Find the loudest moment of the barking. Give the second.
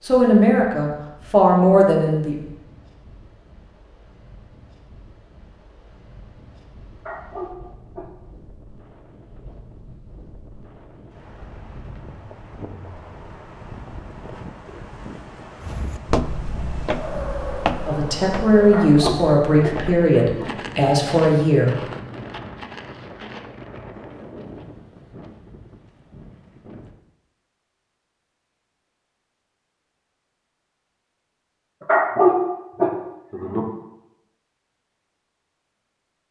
32 s.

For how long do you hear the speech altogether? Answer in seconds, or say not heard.
6 s.